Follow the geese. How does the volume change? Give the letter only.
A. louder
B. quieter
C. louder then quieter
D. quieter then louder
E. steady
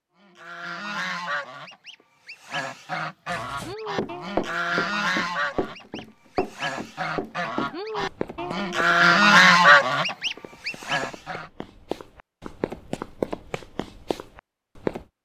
A.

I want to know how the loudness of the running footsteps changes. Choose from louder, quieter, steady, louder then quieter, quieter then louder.
quieter then louder.